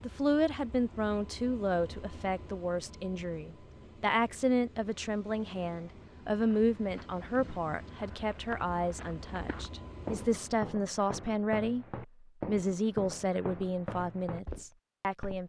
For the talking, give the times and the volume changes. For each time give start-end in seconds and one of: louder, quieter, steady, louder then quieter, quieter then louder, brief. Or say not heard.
0.0-15.4 steady.